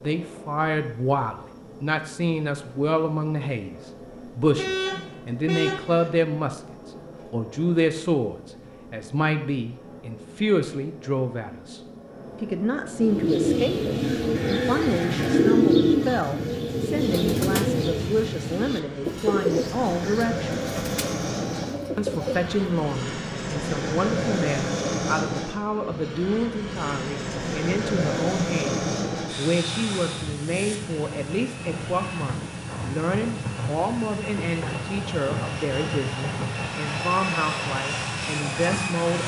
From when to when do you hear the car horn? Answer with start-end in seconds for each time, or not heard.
4.5-6.1.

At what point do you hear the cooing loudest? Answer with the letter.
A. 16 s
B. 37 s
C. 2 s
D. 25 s
A.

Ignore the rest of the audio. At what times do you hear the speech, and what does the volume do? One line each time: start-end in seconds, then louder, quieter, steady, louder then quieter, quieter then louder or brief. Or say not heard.
0.0-11.8 steady
12.4-20.6 steady
21.9-39.2 steady.